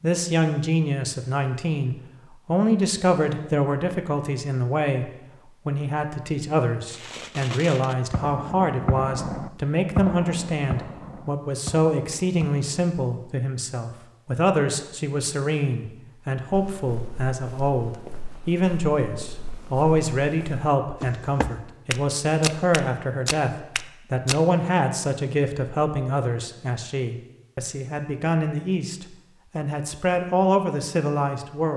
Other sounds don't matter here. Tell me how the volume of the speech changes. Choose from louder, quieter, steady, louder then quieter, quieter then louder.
steady.